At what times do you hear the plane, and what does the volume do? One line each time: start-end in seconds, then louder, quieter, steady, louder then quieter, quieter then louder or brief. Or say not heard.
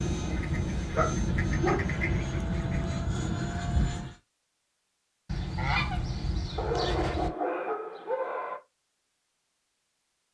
0.0-4.2 steady.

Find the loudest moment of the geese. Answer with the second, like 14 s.
6 s.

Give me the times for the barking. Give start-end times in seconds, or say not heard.
0.9-2.0, 6.5-8.6.